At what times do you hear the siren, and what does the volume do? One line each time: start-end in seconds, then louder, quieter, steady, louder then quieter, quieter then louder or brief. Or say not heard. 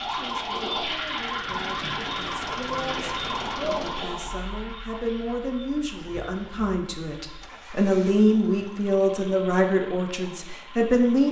0.0-11.2 quieter.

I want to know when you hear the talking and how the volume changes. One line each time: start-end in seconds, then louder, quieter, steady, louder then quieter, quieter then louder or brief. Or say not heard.
0.1-11.2 louder.